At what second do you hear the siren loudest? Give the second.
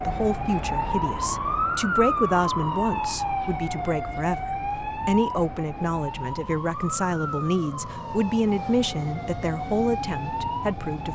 2 s.